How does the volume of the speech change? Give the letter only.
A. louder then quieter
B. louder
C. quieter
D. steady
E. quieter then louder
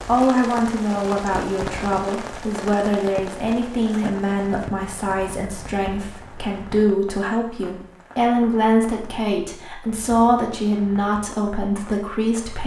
D.